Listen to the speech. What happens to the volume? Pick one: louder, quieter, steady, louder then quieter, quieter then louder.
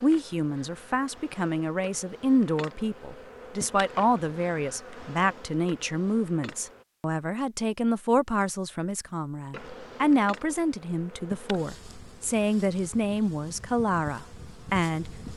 steady.